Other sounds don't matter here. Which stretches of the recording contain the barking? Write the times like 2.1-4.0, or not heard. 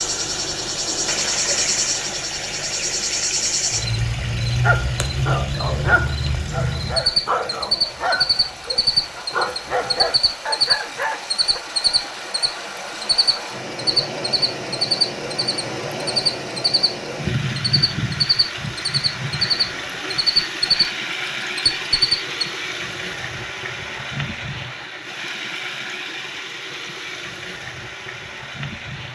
4.6-11.6.